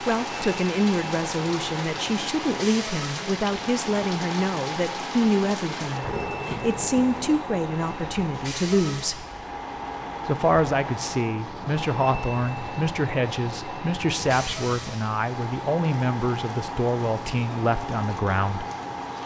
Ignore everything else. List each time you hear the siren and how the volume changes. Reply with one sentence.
The siren can't be heard in this clip.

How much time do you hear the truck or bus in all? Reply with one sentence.
You can hear the truck or bus for 19 seconds altogether.